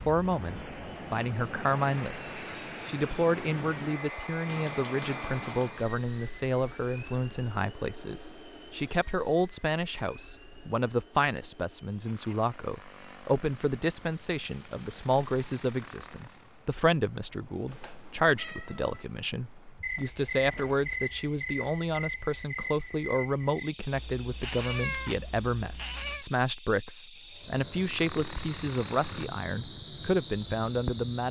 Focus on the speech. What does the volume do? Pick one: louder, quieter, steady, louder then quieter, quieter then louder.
steady.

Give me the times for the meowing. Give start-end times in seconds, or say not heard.
4.5-5.9, 17.6-19.1, 23.9-26.2.